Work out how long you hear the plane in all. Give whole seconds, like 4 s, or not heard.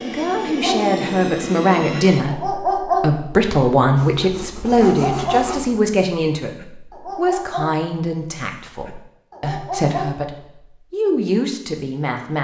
2 s.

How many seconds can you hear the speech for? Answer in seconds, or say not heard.
12 s.